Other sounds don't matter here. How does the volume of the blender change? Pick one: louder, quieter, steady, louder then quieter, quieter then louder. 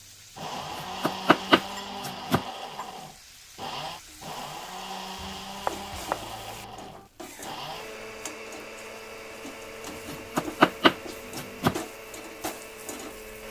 quieter.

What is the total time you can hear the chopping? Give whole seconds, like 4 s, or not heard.
5 s.